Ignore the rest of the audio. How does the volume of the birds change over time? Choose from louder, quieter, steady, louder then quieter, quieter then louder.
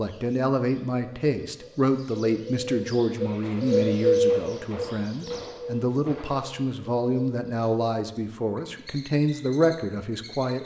louder then quieter.